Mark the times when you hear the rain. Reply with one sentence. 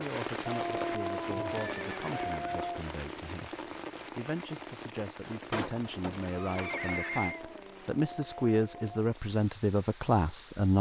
You can hear the rain from 0.0 to 10.7 s.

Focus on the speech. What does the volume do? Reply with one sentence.
The volume of the speech goes up.